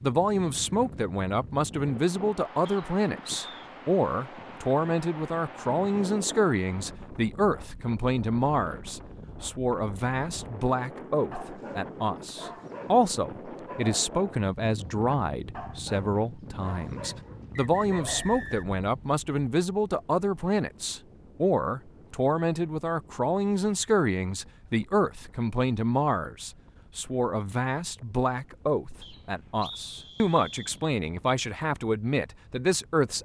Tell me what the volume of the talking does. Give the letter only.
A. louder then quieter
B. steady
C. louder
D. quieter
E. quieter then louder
B.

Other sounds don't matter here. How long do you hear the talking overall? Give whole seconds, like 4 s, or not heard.
33 s.